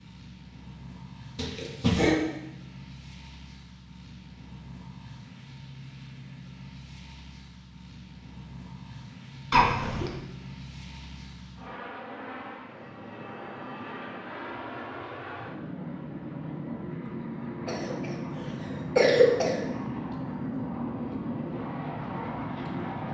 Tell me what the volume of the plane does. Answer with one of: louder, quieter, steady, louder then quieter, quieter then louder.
louder.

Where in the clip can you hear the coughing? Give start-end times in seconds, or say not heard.
1.4-2.2, 9.5-10.2, 17.6-19.6.